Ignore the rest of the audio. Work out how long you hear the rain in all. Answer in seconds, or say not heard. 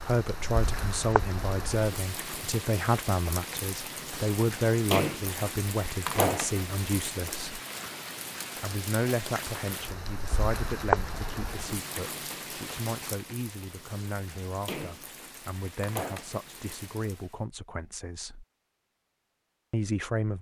17 s.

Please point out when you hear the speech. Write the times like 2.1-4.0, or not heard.
0.0-7.6, 8.6-18.4, 19.7-20.3.